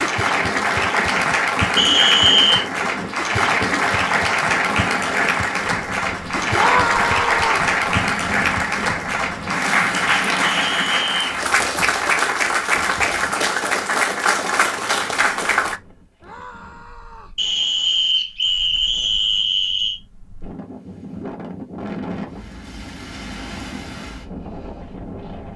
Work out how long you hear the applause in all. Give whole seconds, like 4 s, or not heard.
16 s.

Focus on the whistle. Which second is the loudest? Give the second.
2 s.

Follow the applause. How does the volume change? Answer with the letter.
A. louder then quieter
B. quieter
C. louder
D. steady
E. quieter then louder
D.